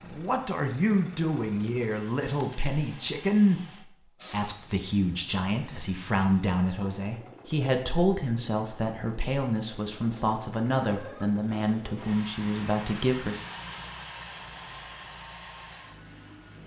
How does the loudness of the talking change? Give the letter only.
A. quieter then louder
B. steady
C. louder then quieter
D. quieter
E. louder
B.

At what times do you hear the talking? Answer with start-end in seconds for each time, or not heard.
0.1-13.4.